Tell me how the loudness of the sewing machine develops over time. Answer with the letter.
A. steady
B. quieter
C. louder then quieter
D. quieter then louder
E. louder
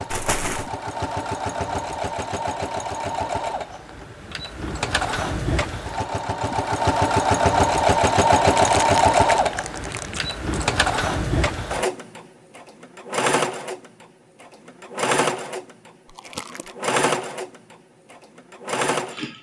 C.